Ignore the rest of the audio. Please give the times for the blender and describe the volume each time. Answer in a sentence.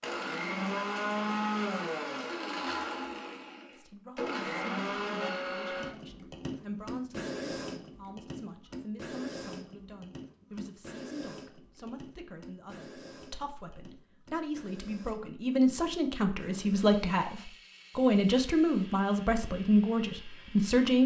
You can hear the blender from 0.0 to 21.0 s, getting quieter.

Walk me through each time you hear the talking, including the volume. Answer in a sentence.
The talking can be heard from 3.7 to 21.0 s, getting louder.